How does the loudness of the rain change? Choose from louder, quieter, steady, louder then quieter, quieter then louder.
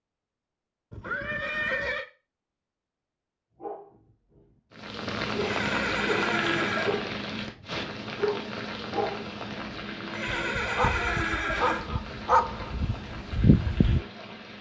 quieter.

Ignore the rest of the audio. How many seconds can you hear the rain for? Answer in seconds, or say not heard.
10 s.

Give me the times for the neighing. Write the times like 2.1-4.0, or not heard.
0.9-2.0, 5.4-7.0, 10.1-11.9.